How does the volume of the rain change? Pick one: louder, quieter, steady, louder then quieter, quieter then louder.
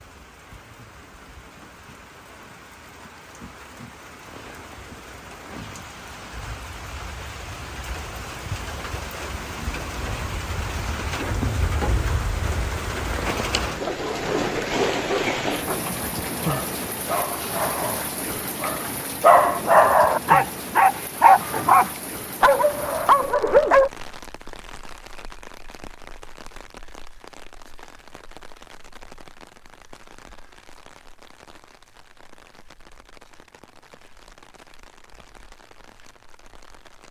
louder then quieter.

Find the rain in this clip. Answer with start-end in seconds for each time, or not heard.
0.0-37.0.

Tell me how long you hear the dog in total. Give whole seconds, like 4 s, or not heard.
10 s.